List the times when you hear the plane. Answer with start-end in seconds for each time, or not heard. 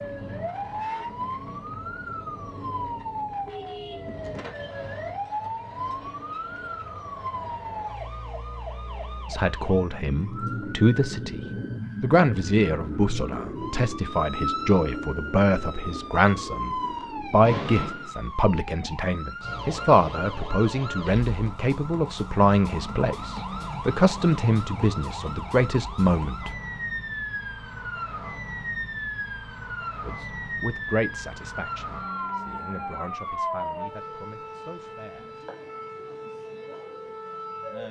not heard.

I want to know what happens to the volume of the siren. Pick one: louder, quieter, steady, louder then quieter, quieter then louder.
steady.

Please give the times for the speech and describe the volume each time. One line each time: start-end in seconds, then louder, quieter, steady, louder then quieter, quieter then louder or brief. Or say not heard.
9.2-11.4 brief
12.0-26.5 steady
30.1-35.4 quieter.